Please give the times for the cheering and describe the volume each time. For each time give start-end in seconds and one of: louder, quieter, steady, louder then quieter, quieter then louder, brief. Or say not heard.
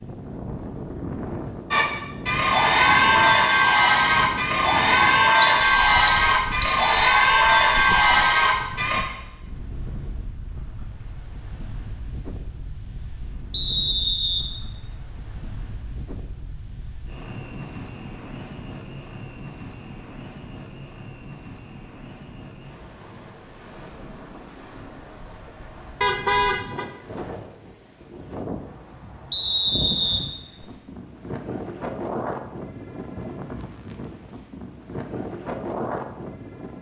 1.7-9.0 steady.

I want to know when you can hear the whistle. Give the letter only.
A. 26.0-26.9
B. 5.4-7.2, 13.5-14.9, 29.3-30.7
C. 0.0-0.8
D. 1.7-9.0
B.